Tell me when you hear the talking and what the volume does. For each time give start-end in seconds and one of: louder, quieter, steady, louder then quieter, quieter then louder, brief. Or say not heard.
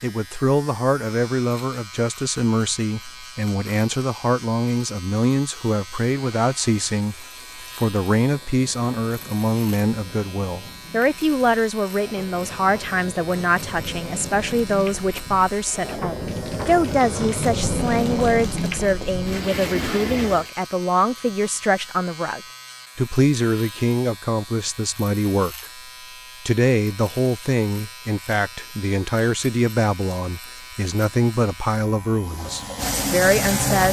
0.0-25.6 steady
26.4-33.8 steady.